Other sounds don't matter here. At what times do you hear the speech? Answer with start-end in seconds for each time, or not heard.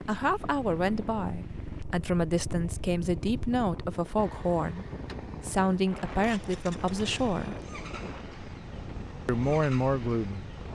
0.1-7.7, 9.2-10.4.